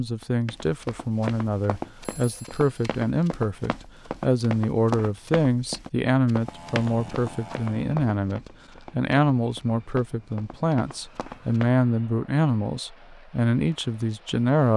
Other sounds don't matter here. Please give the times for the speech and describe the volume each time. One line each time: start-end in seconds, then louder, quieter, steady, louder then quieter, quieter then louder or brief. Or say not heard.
0.0-14.7 steady.